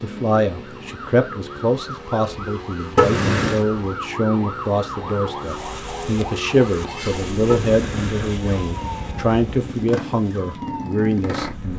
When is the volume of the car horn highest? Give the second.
3 s.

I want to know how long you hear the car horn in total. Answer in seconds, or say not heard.
2 s.